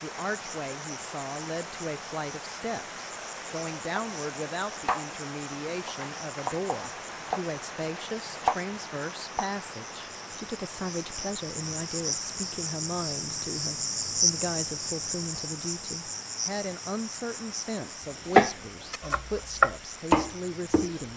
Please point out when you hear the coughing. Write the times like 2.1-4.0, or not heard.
not heard.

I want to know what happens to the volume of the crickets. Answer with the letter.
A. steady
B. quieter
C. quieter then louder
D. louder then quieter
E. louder
D.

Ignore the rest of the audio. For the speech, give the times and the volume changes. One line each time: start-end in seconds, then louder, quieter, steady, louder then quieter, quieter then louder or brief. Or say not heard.
0.0-21.1 steady.